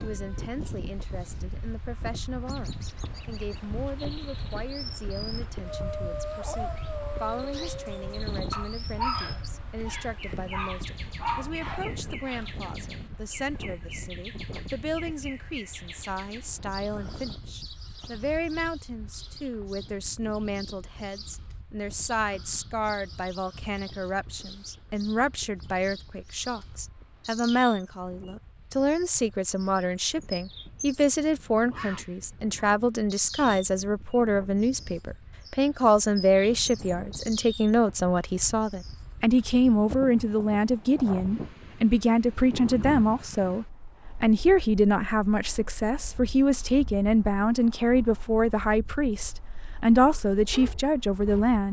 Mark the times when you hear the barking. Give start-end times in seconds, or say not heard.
5.6-12.5, 50.3-51.5.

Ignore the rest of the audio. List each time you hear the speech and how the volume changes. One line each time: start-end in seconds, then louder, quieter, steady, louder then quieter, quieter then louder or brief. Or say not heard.
0.0-51.6 louder.